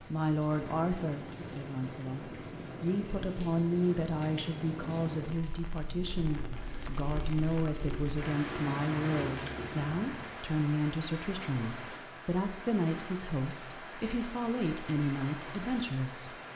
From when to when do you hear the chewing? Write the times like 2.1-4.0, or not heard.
5.8-10.3.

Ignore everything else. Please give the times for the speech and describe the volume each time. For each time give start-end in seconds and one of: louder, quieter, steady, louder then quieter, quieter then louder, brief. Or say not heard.
0.0-16.4 steady.